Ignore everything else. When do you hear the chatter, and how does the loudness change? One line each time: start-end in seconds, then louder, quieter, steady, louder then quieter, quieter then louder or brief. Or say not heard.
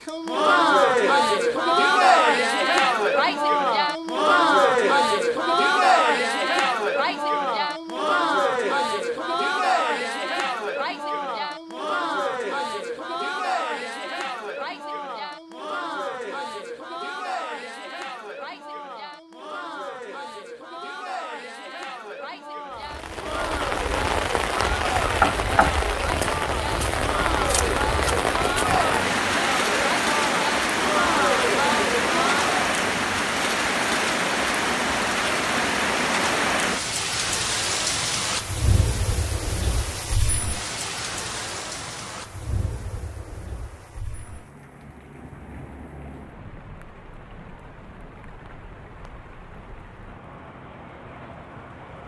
0.1-32.5 quieter then louder.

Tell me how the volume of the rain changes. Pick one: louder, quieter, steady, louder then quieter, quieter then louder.
quieter.